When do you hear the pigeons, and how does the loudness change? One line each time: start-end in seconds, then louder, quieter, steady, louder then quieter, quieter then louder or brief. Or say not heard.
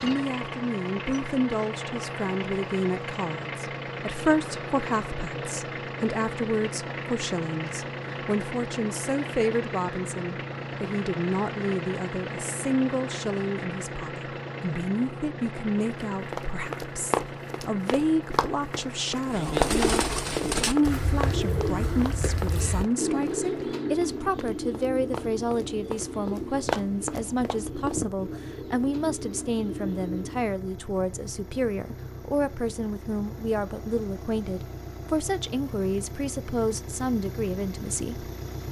19.2-30.6 quieter.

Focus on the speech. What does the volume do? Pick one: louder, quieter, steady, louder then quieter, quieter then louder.
steady.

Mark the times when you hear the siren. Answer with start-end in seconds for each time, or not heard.
not heard.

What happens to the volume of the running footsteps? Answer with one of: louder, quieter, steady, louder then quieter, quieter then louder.
quieter then louder.